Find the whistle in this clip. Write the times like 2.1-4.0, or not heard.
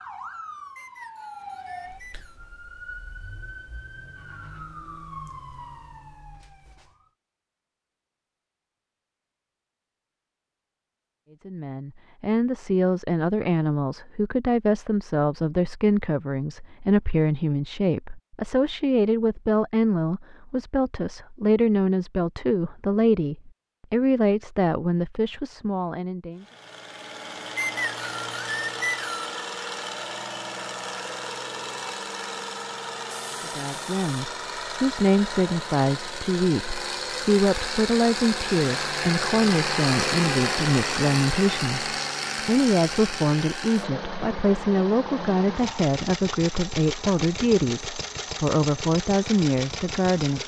0.8-2.4, 27.6-29.4.